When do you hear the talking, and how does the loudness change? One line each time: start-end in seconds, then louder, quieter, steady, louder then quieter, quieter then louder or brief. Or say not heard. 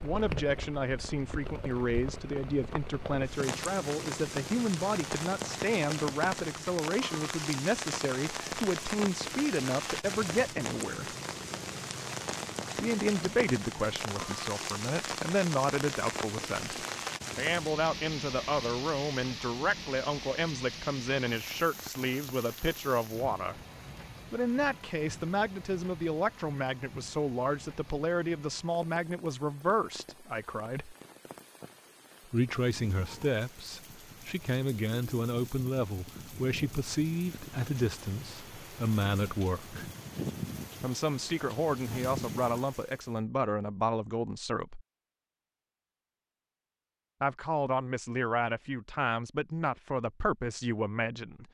0.0-11.2 steady
12.8-23.6 steady
24.3-30.9 steady
32.3-39.9 steady
40.8-44.9 steady
47.2-51.4 steady.